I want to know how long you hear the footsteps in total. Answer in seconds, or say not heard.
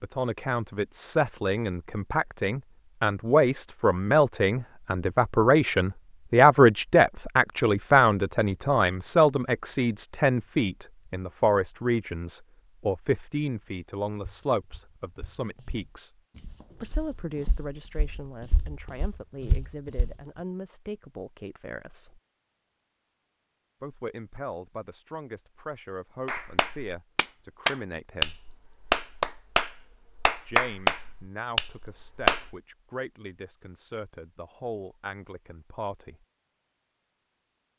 6 s.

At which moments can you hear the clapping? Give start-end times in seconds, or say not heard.
26.2-32.5.